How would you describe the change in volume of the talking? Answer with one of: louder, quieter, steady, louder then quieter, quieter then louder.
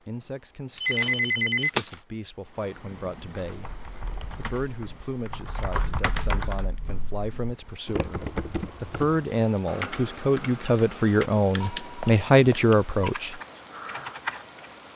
louder.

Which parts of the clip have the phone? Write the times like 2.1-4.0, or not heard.
0.8-2.0, 11.6-13.1.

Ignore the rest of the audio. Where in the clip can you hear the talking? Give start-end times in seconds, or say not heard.
0.1-13.4.